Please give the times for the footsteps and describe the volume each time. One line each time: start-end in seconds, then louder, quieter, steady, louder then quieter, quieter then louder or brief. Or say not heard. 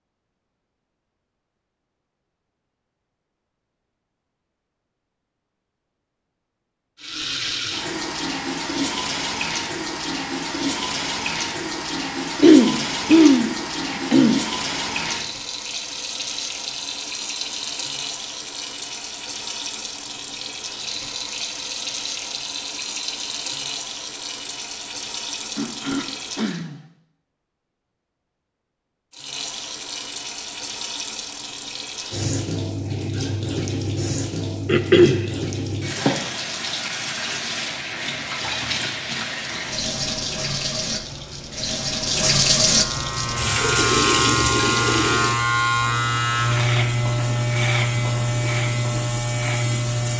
not heard.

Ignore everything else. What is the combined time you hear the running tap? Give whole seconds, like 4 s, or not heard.
41 s.